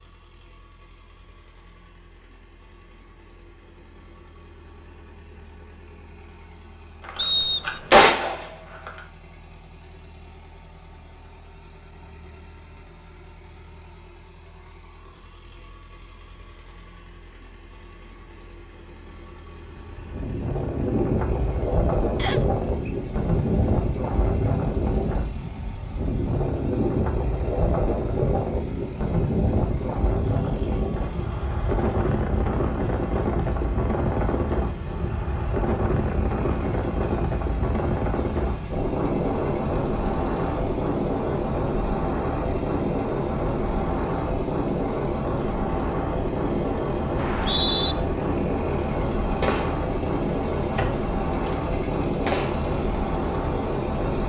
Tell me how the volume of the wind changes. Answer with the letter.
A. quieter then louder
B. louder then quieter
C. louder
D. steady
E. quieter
D.